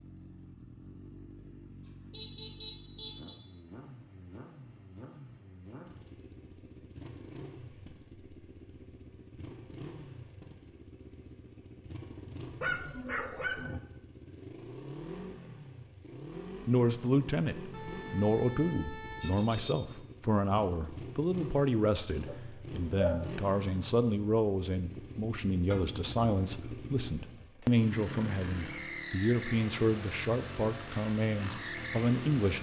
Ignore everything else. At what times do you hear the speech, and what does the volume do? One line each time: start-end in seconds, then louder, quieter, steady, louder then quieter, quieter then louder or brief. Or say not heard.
16.6-32.5 steady.